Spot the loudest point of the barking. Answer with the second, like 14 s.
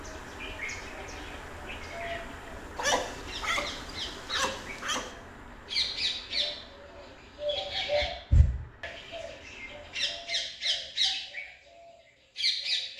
3 s.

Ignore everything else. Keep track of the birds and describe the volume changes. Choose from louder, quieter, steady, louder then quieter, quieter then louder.
louder.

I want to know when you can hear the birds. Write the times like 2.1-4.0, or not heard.
0.0-4.8, 5.7-12.9.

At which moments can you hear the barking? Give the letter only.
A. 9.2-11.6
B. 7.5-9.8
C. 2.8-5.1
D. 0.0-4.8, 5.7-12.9
C.